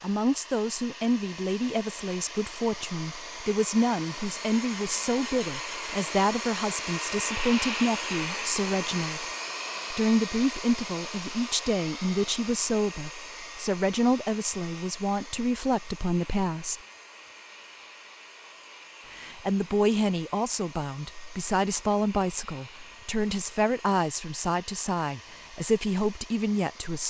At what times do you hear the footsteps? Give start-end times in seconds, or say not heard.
not heard.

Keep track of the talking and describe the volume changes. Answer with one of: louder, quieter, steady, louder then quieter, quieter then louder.
steady.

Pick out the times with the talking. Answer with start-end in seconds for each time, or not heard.
0.0-9.2, 9.9-16.8, 19.1-27.0.